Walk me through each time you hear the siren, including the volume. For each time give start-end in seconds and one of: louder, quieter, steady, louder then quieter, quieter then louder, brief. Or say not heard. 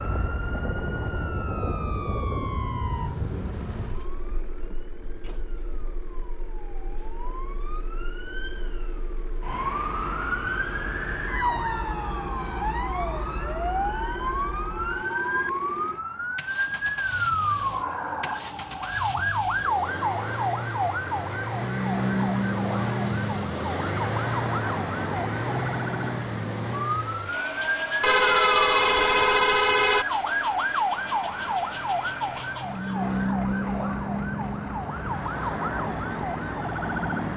0.0-37.3 louder.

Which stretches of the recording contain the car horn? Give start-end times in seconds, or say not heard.
28.0-30.1.